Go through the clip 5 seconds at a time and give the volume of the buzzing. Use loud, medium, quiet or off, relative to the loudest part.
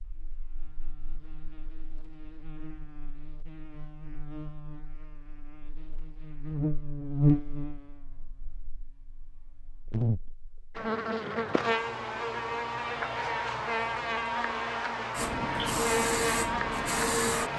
quiet, loud, loud, loud.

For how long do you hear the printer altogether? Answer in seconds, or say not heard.
2 s.